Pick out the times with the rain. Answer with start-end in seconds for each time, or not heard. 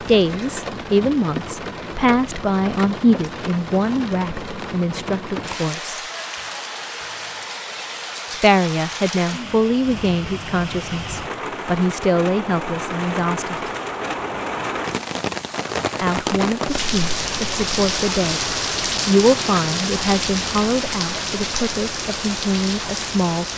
0.0-23.5.